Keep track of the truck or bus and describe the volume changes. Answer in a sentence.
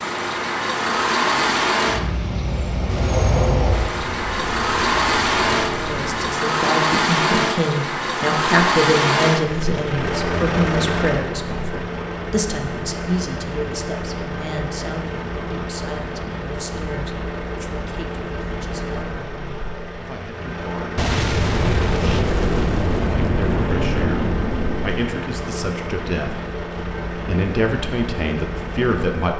The volume of the truck or bus goes down.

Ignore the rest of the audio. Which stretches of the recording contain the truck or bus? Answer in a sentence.
You can hear the truck or bus from 0.0 to 29.3 s.